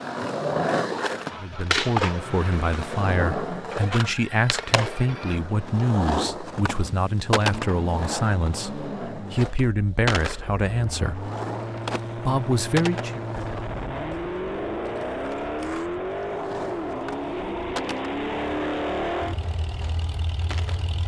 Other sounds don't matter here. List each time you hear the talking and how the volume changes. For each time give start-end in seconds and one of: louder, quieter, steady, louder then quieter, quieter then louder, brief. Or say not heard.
1.4-11.3 steady
12.2-13.2 brief.